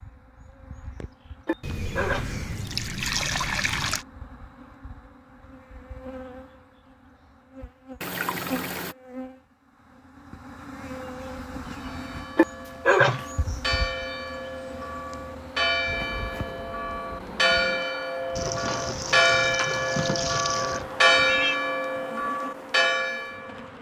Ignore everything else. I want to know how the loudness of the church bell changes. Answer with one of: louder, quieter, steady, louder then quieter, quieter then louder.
louder.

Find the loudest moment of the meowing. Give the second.
13 s.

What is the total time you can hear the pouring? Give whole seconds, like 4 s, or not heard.
6 s.